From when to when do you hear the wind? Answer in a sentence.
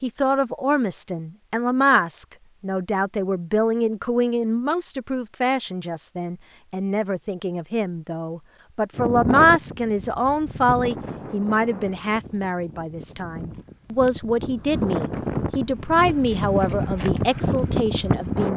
The wind can be heard from 8.9 to 18.5 s.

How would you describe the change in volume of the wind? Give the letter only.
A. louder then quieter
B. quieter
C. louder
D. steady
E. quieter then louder
E.